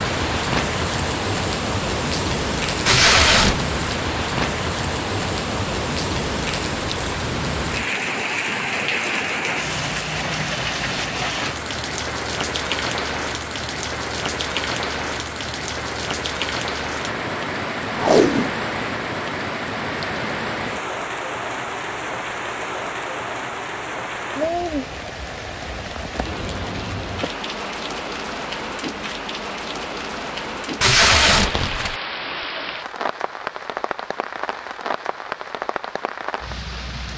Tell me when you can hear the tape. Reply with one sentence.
The tape can be heard from 2.9 to 3.6 s, from 17.9 to 18.6 s and from 30.8 to 31.9 s.